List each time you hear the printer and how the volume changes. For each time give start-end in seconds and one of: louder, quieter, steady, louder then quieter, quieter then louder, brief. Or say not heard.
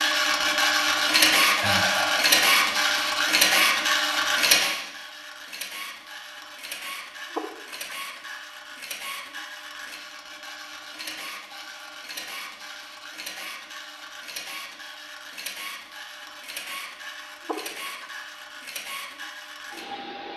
0.0-20.3 quieter.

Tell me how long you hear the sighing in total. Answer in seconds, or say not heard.
2 s.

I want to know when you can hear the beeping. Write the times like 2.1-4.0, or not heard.
not heard.